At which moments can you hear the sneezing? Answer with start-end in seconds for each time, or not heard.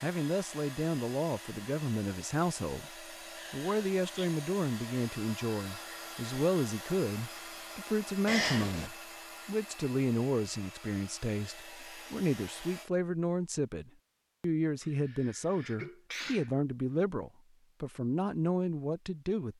3.4-4.3, 8.2-8.9, 14.8-16.6.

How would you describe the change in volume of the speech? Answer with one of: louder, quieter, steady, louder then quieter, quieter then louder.
steady.